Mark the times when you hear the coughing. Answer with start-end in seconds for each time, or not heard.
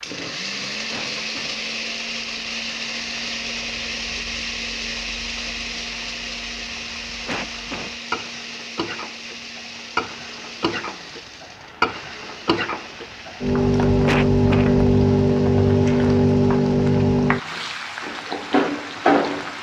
0.9-1.6, 7.2-7.9, 14.1-14.7.